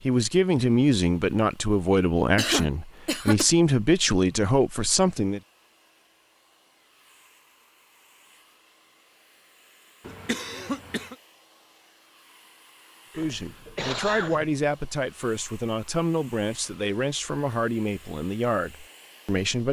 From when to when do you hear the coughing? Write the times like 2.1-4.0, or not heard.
2.4-3.5, 10.1-11.2, 13.1-14.6.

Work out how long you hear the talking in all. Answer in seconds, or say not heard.
12 s.